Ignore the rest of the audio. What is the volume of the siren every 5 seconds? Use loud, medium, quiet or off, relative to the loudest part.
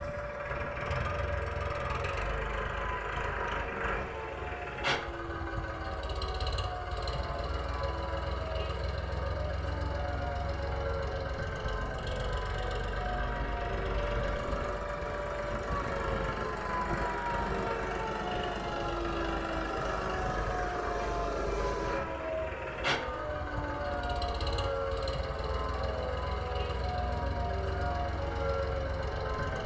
medium, medium, loud, loud, loud, loud.